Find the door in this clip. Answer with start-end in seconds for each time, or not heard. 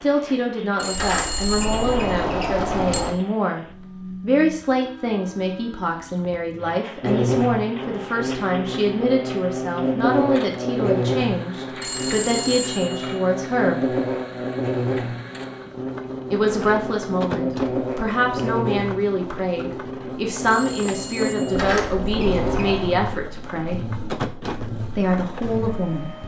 0.9-3.1, 21.5-22.9.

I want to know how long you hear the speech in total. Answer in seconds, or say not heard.
23 s.